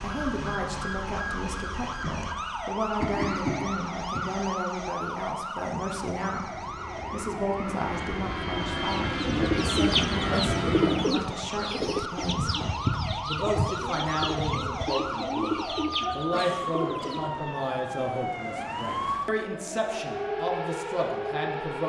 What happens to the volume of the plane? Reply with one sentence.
The volume of the plane goes up.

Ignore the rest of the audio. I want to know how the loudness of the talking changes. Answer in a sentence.
The loudness of the talking stays about the same.